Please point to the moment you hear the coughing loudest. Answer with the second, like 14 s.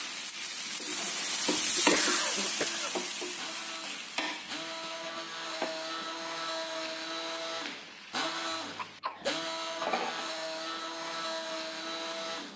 2 s.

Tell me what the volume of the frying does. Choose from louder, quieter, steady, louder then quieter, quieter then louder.
quieter then louder.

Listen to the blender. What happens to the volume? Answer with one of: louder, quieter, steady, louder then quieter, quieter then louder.
louder.